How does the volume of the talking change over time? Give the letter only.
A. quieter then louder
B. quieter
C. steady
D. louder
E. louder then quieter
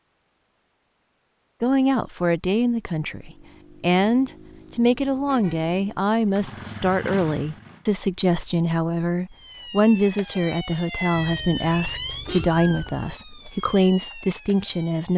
C.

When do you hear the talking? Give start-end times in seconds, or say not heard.
1.6-15.1.